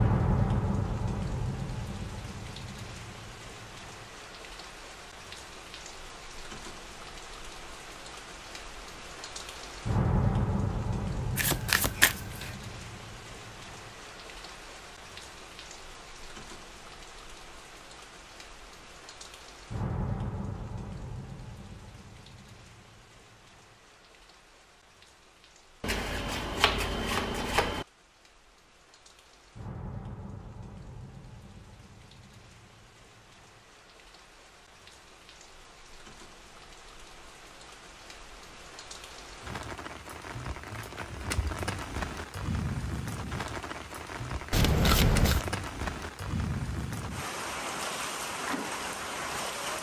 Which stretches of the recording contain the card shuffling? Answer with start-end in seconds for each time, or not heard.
11.3-12.5, 25.8-27.9, 44.5-45.5.